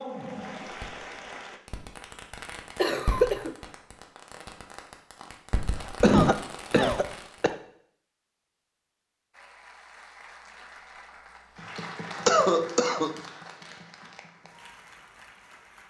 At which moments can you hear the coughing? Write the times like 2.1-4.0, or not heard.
2.8-3.5, 5.8-7.5, 12.2-13.2.